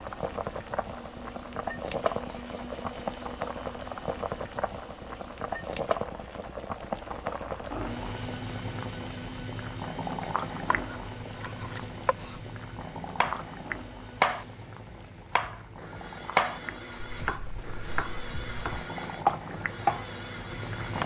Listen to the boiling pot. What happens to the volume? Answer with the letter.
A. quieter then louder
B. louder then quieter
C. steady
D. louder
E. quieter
E.